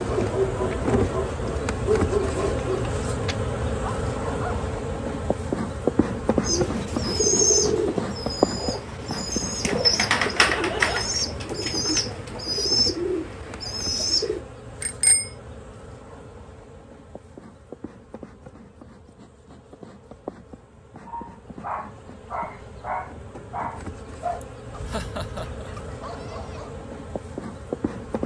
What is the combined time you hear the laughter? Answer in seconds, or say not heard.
2 s.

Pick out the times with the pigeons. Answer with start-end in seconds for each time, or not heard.
6.4-14.4.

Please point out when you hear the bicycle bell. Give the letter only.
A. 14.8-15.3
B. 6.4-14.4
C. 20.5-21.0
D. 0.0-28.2
A.